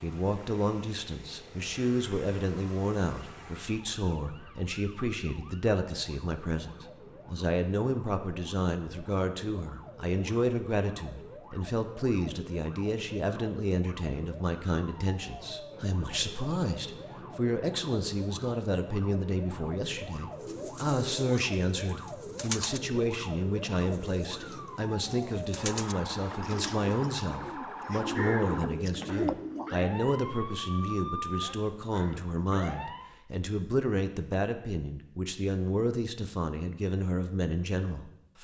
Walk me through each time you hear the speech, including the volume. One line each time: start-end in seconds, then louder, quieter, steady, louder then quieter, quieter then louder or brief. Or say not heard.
0.0-38.4 steady.